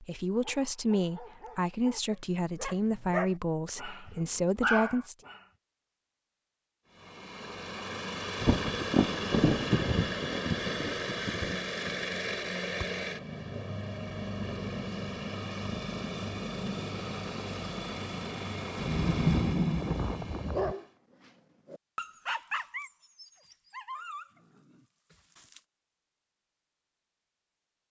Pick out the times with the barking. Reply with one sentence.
The barking can be heard from 0.3 to 5.5 s, from 20.4 to 20.9 s and from 21.6 to 25.6 s.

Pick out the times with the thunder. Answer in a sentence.
The thunder can be heard from 8.4 to 11.9 s and from 18.8 to 20.8 s.